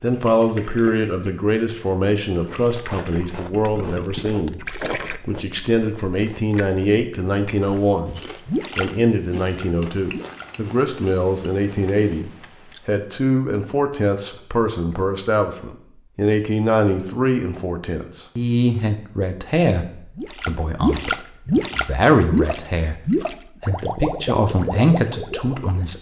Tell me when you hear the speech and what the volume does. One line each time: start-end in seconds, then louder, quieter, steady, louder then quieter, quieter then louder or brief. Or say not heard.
0.0-25.9 steady.